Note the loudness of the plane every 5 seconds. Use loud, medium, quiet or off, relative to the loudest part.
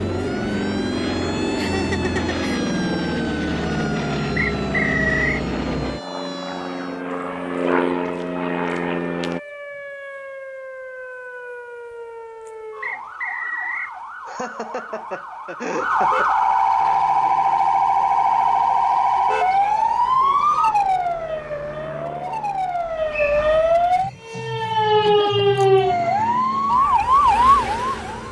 loud, loud, off, quiet, quiet, off.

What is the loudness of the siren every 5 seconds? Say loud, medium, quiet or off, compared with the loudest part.
quiet, quiet, quiet, loud, loud, loud.